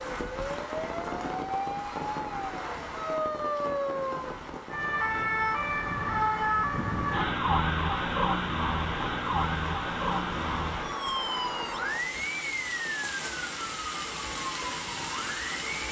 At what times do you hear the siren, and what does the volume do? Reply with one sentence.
You can hear the siren from 0.0 to 15.7 s, getting louder then quieter.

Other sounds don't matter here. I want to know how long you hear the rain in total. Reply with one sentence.
You can hear the rain for 16 seconds altogether.